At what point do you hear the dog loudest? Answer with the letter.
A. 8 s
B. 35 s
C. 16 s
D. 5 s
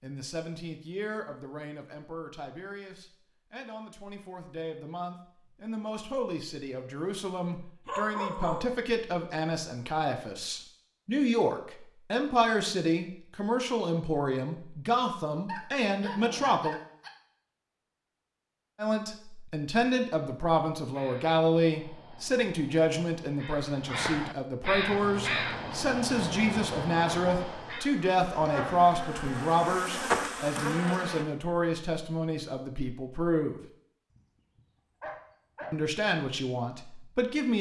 A.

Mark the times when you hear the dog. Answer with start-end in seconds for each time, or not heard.
7.8-8.8, 15.4-17.1, 34.1-35.8.